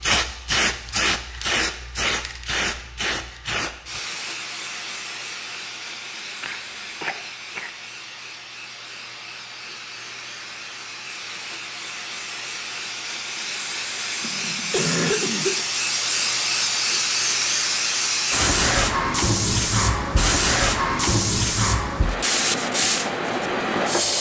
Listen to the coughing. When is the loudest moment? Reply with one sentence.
The volume of the coughing peaks at 15 seconds.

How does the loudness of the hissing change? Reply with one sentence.
The loudness of the hissing goes down, then up.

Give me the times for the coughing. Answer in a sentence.
You can hear the coughing from 6.4 to 7.7 s and from 14.2 to 15.6 s.